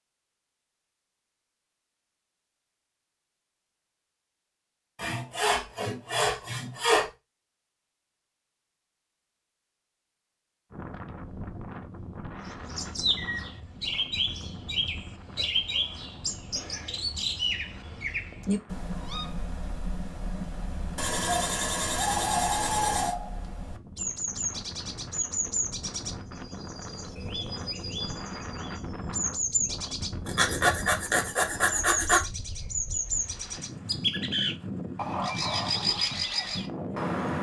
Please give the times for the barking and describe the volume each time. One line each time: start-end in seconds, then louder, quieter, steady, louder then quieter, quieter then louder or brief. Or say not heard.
not heard.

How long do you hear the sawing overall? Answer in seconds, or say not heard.
6 s.